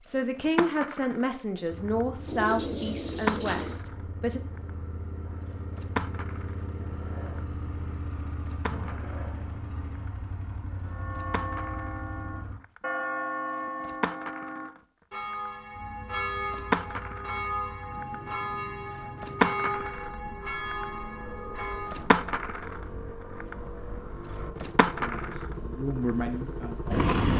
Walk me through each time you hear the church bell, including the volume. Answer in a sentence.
You can hear the church bell from 10.9 to 22.1 s, at a steady volume.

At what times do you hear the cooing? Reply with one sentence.
The cooing can be heard from 2.2 to 3.8 s.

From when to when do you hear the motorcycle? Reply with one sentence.
You can hear the motorcycle from 1.6 to 12.6 s and from 15.7 to 27.1 s.